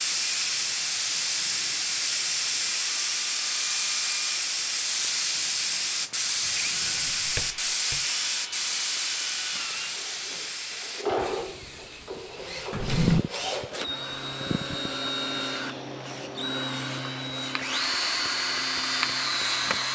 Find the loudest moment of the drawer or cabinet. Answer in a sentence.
The loudest moment of the drawer or cabinet is at 13 seconds.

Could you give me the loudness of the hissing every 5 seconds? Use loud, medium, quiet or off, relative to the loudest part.
loud, loud, medium, medium.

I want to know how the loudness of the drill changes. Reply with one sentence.
The volume of the drill goes up.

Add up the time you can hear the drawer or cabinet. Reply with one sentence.
You can hear the drawer or cabinet for 2 seconds altogether.